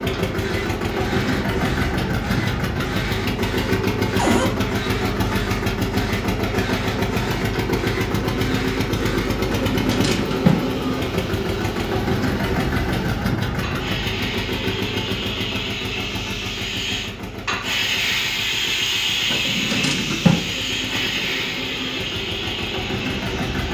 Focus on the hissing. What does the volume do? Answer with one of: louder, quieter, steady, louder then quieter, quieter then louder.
louder.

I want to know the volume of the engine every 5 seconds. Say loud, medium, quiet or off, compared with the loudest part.
loud, loud, loud, medium, medium.